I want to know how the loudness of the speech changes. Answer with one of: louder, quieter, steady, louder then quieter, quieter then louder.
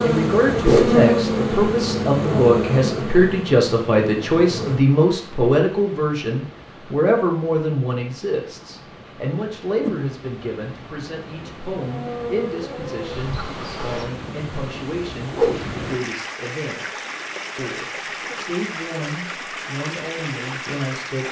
quieter.